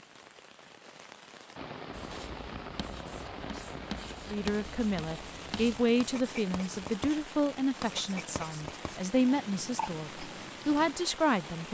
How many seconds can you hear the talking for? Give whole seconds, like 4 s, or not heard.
7 s.